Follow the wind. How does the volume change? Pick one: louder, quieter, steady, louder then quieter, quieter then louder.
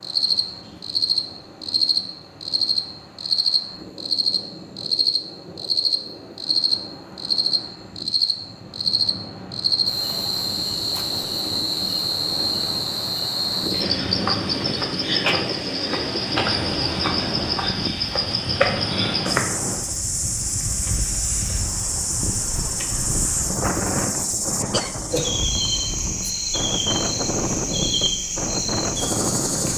louder.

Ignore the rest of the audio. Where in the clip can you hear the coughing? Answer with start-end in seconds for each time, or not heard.
24.1-24.9.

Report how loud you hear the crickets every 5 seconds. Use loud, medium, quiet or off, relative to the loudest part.
loud, loud, loud, loud, medium, loud.